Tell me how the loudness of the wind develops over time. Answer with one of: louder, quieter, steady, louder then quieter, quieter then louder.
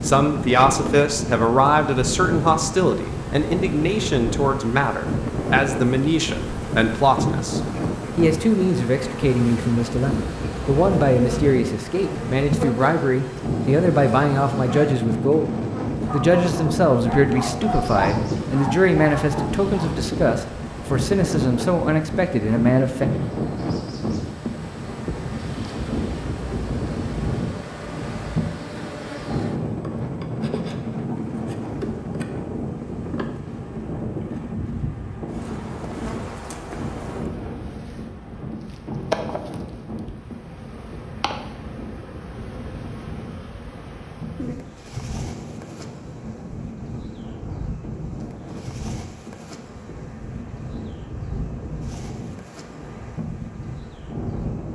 quieter.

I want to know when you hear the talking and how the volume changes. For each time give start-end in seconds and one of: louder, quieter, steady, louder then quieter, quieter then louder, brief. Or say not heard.
0.0-23.1 steady.